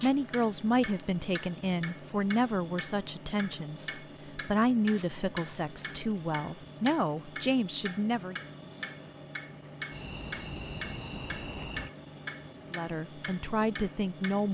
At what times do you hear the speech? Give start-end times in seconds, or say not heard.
0.0-8.3, 12.7-14.4.